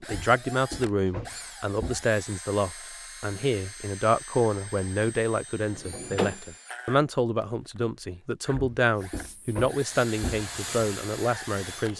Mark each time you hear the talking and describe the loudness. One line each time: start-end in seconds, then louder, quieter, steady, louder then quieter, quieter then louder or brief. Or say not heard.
0.0-11.9 steady.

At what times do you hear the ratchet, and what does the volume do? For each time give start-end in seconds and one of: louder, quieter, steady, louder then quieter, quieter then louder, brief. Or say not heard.
not heard.